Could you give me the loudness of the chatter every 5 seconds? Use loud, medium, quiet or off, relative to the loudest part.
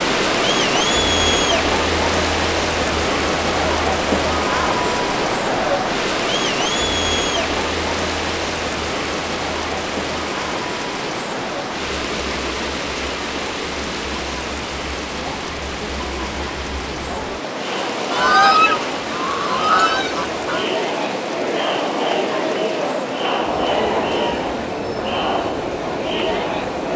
loud, loud, medium, medium, loud, loud.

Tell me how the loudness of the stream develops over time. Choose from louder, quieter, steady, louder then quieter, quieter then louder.
quieter.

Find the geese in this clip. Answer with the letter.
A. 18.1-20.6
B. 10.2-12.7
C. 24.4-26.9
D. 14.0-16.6
A.